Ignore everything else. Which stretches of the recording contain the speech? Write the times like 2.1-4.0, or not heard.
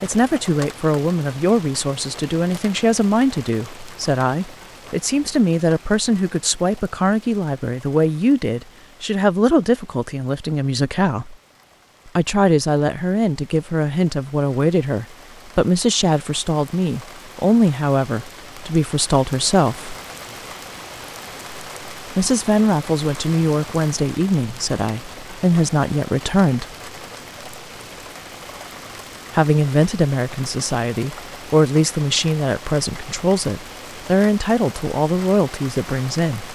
0.0-11.3, 12.2-19.9, 22.1-26.6, 29.3-36.5.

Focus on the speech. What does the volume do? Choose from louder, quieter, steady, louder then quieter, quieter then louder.
steady.